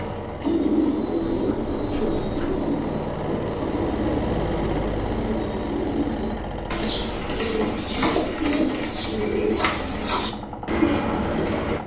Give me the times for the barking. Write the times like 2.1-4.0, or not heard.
1.2-2.6, 9.6-10.3.